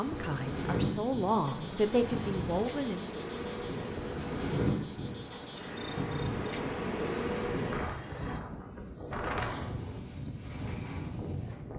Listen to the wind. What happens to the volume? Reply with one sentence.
The volume of the wind stays about the same.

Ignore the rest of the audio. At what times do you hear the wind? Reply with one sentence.
You can hear the wind from 0.0 to 11.7 s.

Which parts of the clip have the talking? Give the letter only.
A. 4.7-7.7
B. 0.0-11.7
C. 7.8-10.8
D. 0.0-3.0
D.